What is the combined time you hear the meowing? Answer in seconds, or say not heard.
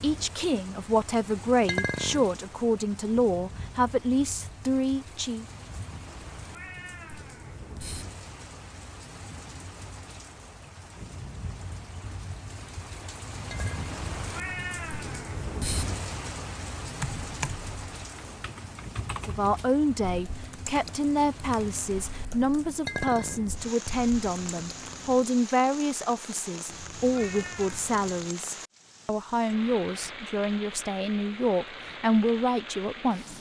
6 s.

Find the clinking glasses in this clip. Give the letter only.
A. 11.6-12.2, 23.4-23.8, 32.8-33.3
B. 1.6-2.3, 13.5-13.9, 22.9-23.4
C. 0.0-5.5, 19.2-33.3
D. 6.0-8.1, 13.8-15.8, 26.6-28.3
B.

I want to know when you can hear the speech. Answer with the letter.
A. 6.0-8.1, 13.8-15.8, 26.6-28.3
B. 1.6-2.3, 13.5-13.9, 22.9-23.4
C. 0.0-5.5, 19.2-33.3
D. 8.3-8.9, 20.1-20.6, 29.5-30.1
C.